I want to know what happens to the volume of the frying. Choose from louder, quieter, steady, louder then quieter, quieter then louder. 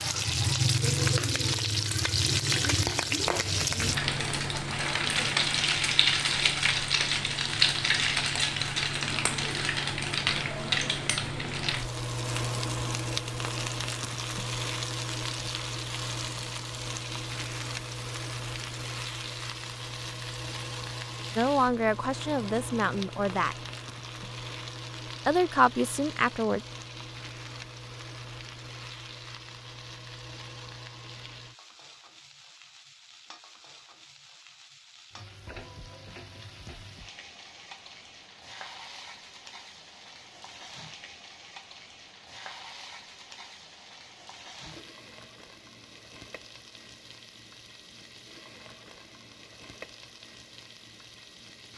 quieter.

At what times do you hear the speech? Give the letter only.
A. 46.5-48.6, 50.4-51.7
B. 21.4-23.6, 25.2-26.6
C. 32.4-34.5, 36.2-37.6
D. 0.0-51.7
B.